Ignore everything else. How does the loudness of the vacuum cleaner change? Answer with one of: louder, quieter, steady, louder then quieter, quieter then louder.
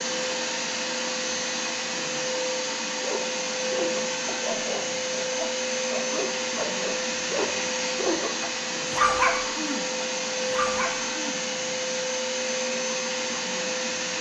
steady.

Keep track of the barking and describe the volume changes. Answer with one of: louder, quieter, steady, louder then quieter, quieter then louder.
louder then quieter.